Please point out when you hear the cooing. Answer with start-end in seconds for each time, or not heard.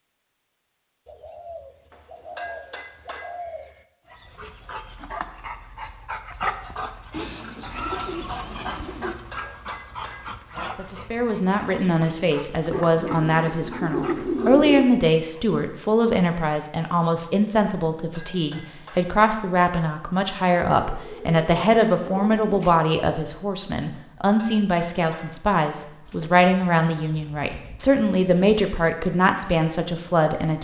1.1-3.9, 7.1-9.2, 12.7-14.9, 20.8-22.8, 26.1-28.6.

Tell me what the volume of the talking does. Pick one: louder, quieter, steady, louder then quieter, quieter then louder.
steady.